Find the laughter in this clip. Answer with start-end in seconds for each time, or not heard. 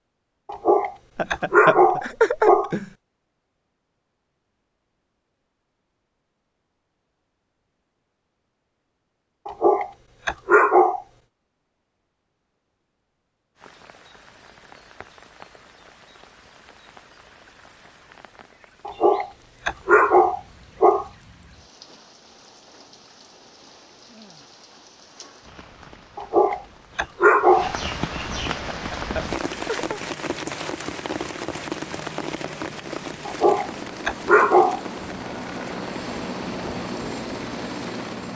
1.1-2.9, 28.6-30.0.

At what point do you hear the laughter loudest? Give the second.
2 s.